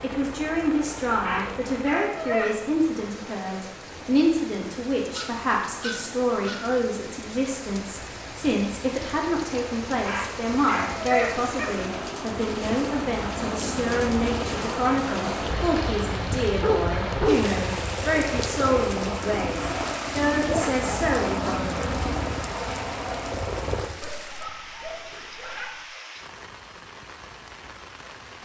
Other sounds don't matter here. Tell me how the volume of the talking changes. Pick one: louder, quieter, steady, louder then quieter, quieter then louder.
steady.